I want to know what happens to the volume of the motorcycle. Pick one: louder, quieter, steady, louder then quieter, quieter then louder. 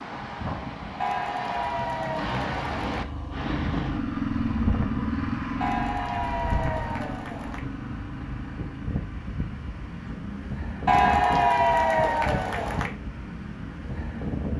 quieter.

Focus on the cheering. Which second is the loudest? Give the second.
11 s.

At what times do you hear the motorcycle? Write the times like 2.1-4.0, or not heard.
1.9-14.3.